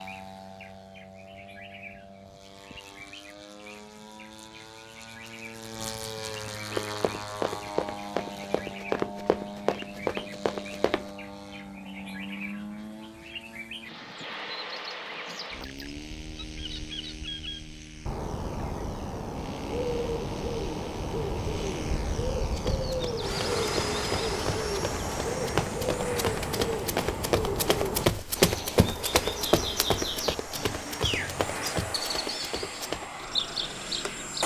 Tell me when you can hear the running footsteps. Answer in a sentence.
You can hear the running footsteps from 6.7 to 11.1 s and from 22.4 to 33.2 s.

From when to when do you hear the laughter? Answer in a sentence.
The laughter can't be heard in this clip.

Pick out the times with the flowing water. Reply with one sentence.
You can't hear the flowing water here.